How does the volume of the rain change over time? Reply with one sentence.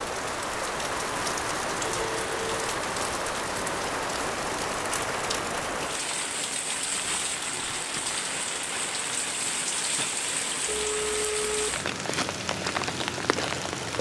The loudness of the rain stays about the same.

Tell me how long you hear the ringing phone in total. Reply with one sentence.
You can hear the ringing phone for 2 seconds altogether.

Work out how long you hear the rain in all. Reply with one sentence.
The rain can be heard for 14 seconds in total.